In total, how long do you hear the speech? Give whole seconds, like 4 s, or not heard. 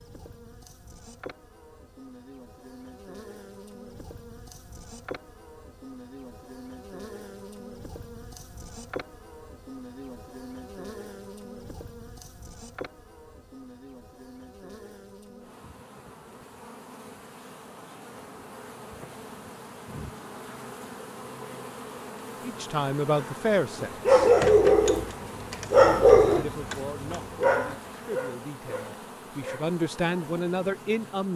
7 s.